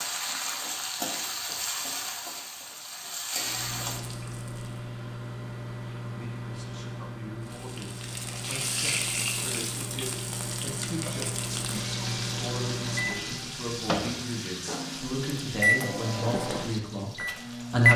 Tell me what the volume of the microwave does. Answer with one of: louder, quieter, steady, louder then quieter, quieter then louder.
louder.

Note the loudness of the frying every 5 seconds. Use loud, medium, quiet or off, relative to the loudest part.
loud, loud, loud, medium.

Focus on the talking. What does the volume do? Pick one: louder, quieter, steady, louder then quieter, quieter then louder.
louder.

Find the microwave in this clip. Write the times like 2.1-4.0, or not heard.
3.4-17.9.